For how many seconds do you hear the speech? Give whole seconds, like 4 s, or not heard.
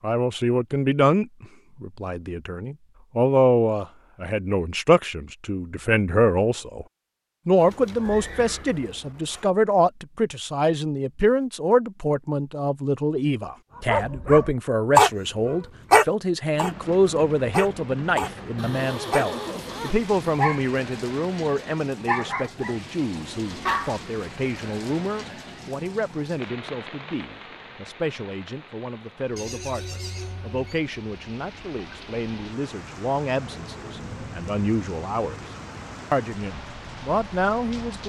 37 s.